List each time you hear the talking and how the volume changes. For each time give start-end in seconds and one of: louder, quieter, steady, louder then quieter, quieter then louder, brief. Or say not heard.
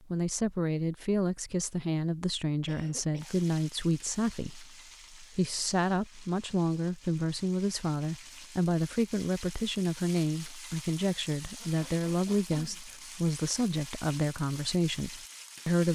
0.1-15.9 steady.